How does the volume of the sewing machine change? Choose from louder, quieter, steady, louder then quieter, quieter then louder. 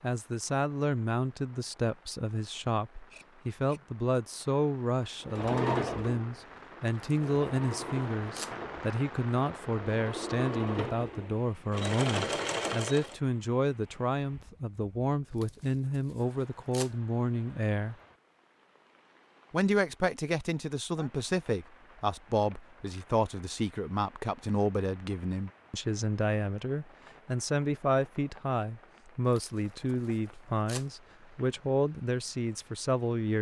quieter then louder.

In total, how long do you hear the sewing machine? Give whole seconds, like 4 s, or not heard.
8 s.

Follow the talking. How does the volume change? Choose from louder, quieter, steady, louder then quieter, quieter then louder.
steady.